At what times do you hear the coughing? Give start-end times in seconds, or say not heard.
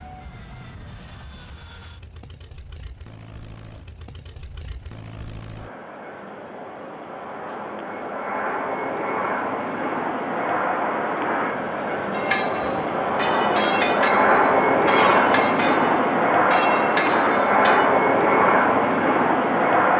not heard.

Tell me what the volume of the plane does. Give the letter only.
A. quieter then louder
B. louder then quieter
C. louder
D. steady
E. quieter
C.